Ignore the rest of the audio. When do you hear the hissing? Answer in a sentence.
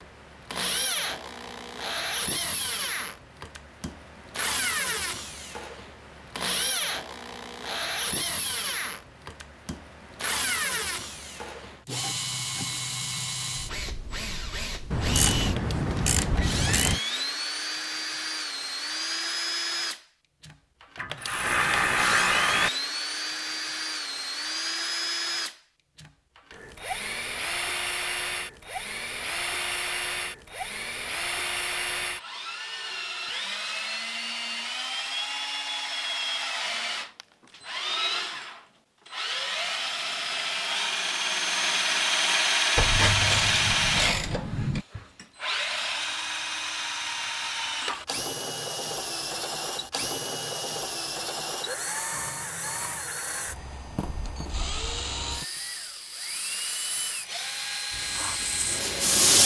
The hissing can be heard from 57.9 to 59.4 s.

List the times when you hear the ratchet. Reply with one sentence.
You can hear the ratchet from 14.9 to 17.0 s, from 20.9 to 22.7 s and from 42.8 to 44.9 s.